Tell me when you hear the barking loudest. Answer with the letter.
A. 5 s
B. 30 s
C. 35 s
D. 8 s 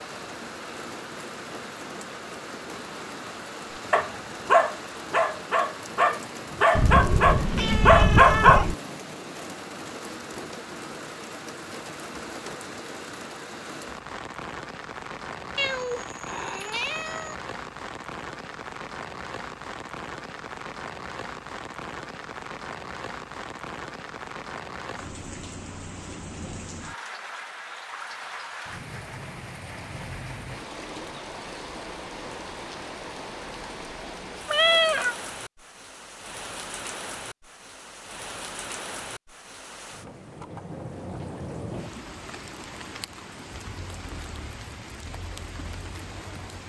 D.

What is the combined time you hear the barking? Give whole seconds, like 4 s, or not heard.
5 s.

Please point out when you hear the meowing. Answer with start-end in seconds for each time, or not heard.
6.8-8.8, 15.6-17.4, 34.5-35.1.